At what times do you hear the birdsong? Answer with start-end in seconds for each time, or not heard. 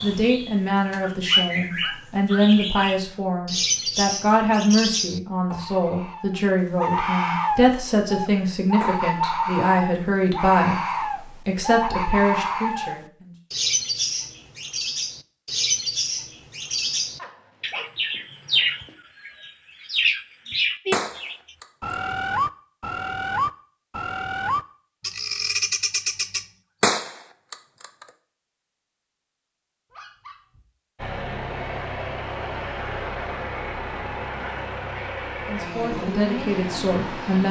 0.0-26.4.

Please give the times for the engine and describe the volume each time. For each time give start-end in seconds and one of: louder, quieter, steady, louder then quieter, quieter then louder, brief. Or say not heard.
30.9-37.4 steady.